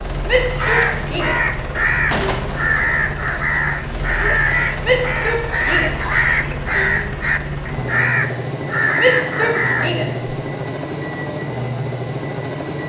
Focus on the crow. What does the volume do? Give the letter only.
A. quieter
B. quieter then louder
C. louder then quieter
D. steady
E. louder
D.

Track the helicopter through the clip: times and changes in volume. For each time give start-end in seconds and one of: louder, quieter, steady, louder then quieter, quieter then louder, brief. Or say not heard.
0.0-12.8 steady.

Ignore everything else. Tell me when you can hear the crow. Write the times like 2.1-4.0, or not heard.
0.5-9.9.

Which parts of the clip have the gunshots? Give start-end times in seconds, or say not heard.
2.1-2.6.